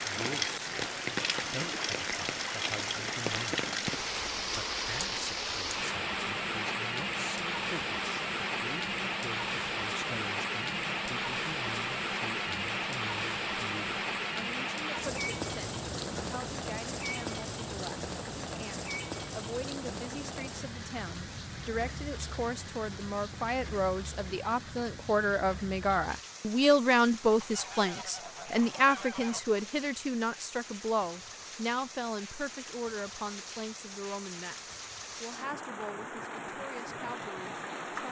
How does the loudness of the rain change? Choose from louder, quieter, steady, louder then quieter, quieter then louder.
quieter.